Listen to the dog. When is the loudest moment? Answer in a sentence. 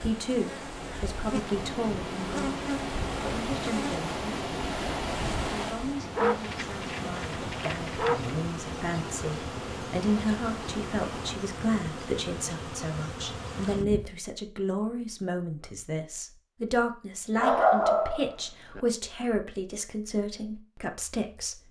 The volume of the dog peaks at 18 seconds.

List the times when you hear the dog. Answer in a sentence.
You can hear the dog from 6.2 to 8.3 s and from 17.4 to 18.8 s.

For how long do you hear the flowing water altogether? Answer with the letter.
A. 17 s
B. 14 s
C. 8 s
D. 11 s
D.